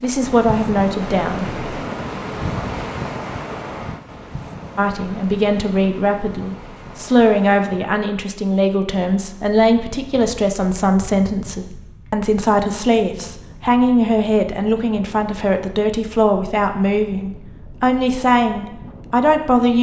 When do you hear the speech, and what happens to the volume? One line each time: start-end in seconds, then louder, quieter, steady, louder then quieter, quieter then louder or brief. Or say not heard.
0.0-1.6 brief
4.8-19.7 steady.